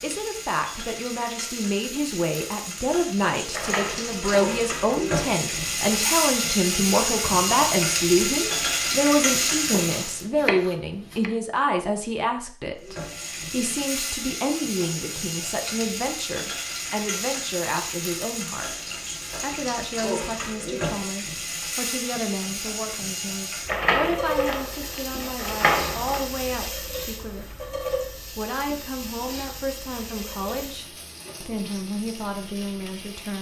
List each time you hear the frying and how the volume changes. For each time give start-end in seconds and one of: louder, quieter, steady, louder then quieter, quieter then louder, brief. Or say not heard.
0.0-10.2 louder
12.8-33.3 quieter.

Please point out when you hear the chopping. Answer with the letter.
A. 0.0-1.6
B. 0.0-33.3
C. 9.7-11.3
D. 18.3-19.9
C.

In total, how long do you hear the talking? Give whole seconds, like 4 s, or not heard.
33 s.